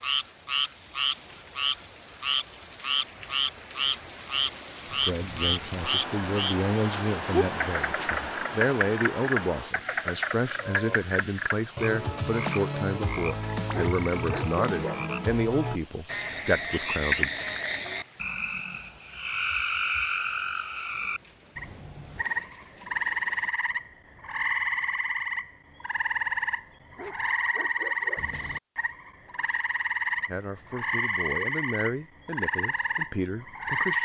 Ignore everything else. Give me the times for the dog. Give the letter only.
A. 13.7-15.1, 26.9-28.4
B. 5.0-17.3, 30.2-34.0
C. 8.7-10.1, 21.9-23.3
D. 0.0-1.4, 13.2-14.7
A.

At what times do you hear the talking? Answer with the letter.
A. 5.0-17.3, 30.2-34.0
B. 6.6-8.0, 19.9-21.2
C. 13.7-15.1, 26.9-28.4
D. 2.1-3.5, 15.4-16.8
A.